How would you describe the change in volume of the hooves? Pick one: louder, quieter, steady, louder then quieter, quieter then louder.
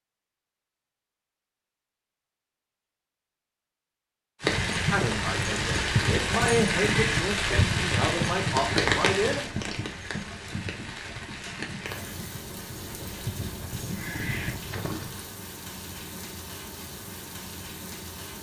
quieter then louder.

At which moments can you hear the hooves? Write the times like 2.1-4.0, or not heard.
4.4-15.2.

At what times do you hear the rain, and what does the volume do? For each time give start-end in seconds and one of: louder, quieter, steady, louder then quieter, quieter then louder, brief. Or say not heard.
4.4-18.3 quieter.